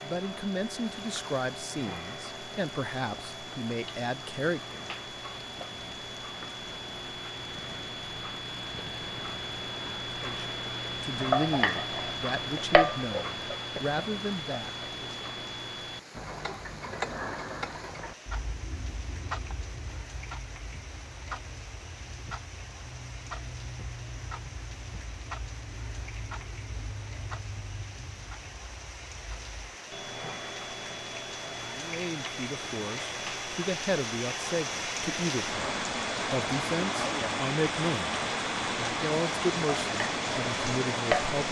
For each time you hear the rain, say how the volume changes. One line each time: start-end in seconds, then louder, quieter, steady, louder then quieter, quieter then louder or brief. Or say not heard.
0.0-41.4 louder.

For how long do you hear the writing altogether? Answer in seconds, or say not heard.
not heard.